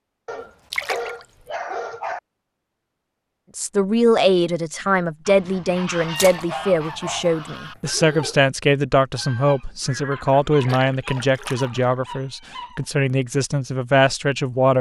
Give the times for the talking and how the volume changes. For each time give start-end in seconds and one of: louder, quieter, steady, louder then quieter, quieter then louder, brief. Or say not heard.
3.5-14.7 steady.